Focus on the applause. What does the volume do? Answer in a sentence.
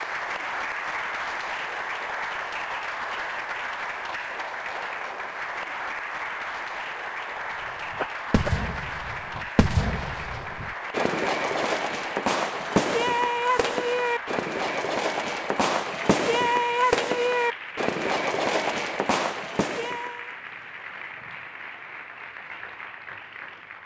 The loudness of the applause goes down.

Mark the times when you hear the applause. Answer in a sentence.
The applause can be heard from 0.0 to 23.8 s.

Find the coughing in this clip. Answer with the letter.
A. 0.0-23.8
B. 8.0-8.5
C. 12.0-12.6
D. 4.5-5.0
B.